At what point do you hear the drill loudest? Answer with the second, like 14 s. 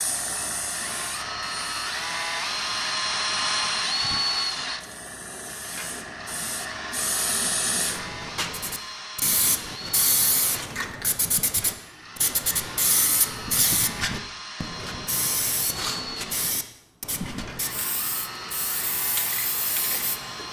4 s.